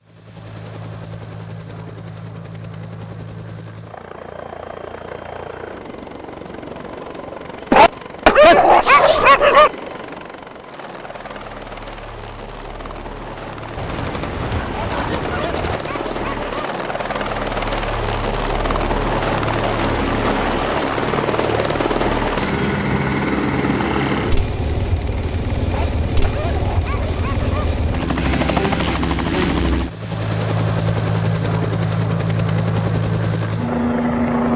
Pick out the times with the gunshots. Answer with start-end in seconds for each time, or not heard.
13.8-15.8.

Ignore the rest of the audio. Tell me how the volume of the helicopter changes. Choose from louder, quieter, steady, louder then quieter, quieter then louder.
louder.